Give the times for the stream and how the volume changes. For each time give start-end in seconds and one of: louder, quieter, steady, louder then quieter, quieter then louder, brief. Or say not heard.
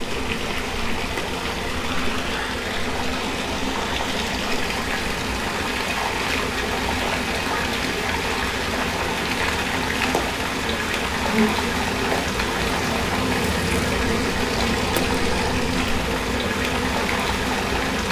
0.0-18.0 steady.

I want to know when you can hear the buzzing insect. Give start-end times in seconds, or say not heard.
0.0-18.0.